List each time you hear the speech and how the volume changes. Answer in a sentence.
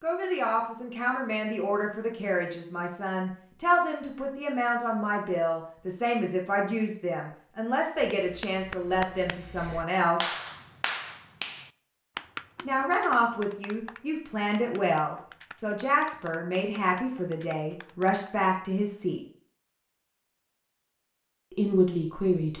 You can hear the speech from 0.0 to 10.3 s, at a steady volume; from 12.7 to 19.2 s, at a steady volume; and briefly from 21.5 to 22.5 s.